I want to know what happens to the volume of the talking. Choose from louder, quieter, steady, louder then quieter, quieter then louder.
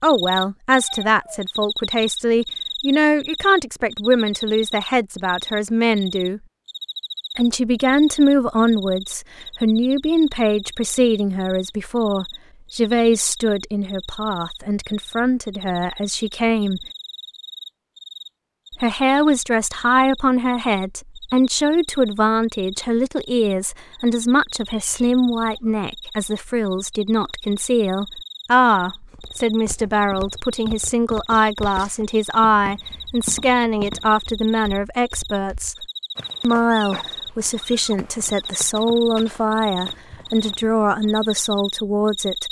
steady.